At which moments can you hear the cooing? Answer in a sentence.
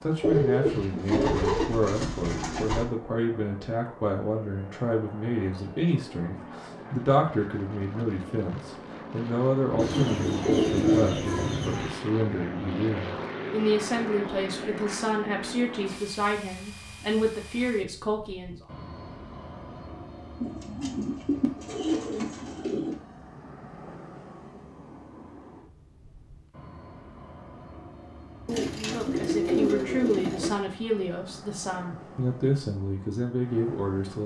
You can hear the cooing from 0.2 to 2.9 s, from 9.8 to 12.0 s, from 20.4 to 22.9 s and from 28.4 to 30.5 s.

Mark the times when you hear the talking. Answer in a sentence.
You can hear the talking from 0.0 to 18.6 s and from 28.7 to 34.2 s.